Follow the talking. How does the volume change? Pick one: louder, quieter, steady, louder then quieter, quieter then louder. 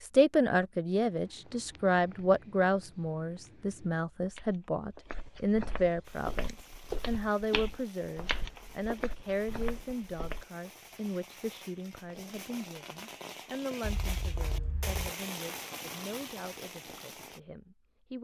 quieter.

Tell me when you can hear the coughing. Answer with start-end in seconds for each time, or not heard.
13.8-15.2.